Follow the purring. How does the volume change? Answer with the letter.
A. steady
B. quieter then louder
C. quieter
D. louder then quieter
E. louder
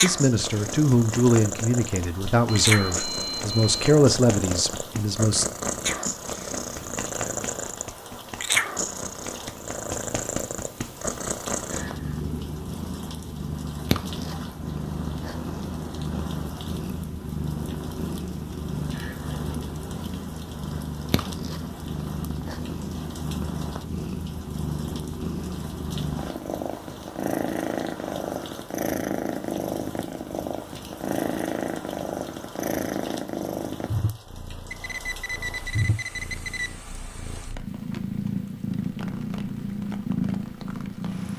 A.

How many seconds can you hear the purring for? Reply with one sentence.
You can hear the purring for 41 seconds altogether.